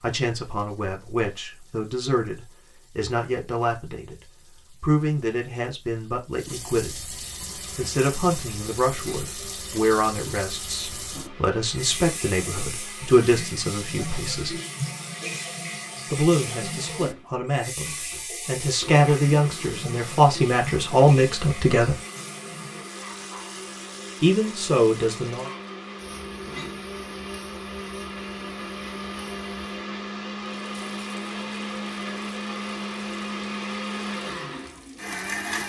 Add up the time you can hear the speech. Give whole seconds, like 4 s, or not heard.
22 s.